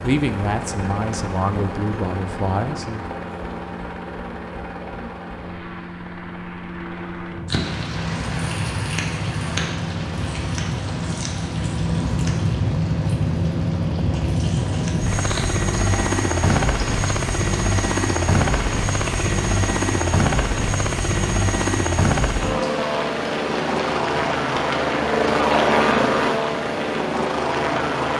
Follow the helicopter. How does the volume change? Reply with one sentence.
The loudness of the helicopter goes up.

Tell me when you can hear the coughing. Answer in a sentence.
You can't hear the coughing here.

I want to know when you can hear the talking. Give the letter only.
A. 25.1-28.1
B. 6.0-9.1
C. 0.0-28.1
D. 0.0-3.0
D.